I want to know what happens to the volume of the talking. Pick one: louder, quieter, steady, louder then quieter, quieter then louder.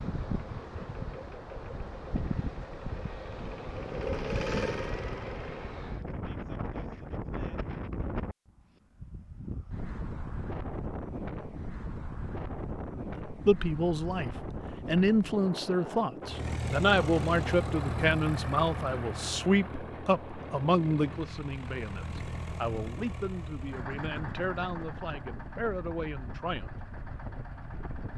quieter.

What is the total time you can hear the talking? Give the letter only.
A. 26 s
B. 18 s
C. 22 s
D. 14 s
D.